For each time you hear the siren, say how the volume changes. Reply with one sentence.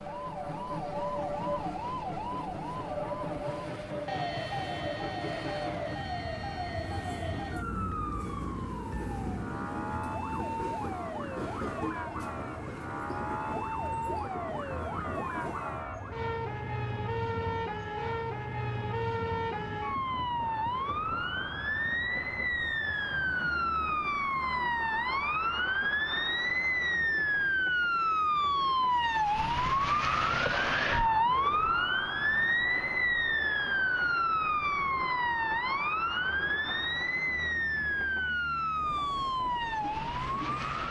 You can hear the siren from 0.0 to 40.8 s, getting louder.